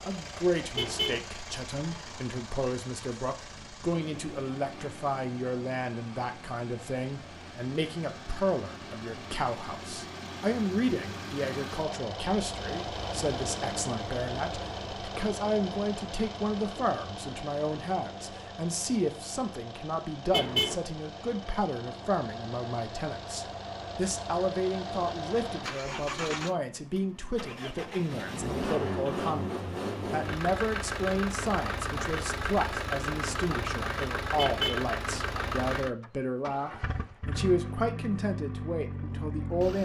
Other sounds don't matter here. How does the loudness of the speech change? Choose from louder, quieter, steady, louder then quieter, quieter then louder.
steady.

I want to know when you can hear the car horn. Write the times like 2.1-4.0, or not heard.
0.8-1.2, 20.3-20.8, 34.4-34.8.